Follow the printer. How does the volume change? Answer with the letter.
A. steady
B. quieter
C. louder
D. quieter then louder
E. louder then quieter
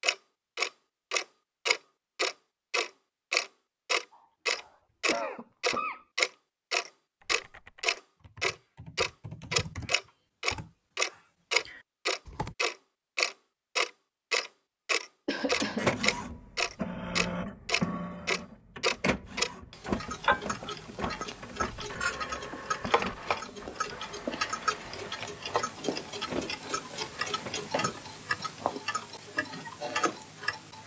B.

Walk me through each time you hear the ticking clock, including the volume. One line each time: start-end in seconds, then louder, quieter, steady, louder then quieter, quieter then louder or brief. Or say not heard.
0.0-30.8 quieter.